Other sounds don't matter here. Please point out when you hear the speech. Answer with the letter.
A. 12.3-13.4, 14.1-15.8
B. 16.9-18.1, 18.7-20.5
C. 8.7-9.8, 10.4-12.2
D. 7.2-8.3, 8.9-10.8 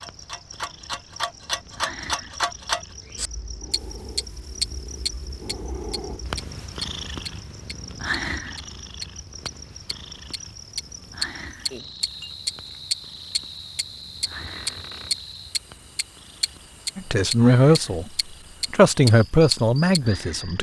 B.